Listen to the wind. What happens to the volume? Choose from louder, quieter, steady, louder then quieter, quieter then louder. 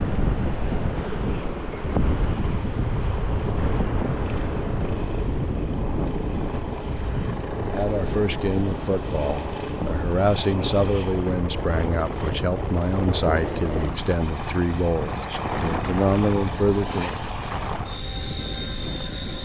quieter.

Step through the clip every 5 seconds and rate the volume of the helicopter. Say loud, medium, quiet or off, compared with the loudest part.
medium, loud, loud, loud.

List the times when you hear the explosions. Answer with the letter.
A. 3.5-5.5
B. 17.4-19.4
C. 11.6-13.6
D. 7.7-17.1
A.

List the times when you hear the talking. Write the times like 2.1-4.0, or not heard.
7.7-17.1.